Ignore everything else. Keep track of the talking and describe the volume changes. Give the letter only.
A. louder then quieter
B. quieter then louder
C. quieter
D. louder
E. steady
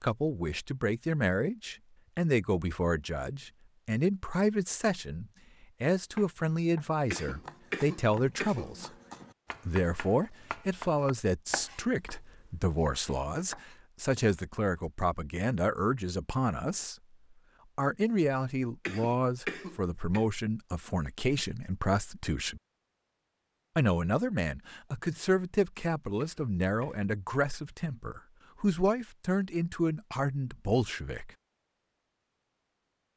E.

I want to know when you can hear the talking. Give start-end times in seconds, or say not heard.
0.0-8.9, 9.7-16.9, 17.8-22.6, 23.8-31.3.